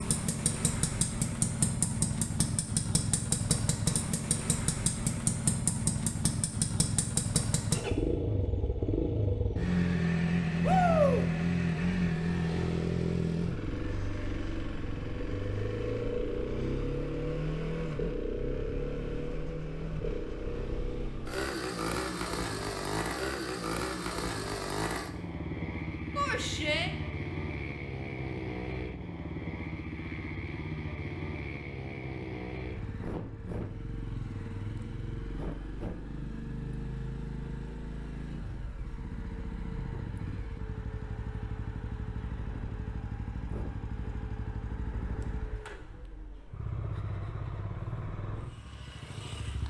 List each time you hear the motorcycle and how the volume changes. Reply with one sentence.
You can hear the motorcycle from 0.0 to 49.6 s, getting quieter.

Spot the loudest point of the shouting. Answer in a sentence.
The loudest moment of the shouting is at 11 seconds.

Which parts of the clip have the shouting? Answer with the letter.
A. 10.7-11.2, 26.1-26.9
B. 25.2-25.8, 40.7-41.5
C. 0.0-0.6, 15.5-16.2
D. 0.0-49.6
A.